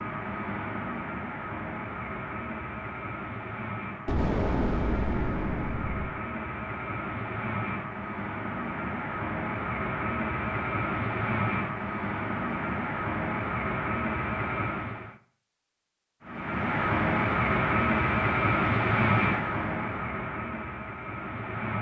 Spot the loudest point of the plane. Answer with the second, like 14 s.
19 s.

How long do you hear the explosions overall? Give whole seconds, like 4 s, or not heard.
2 s.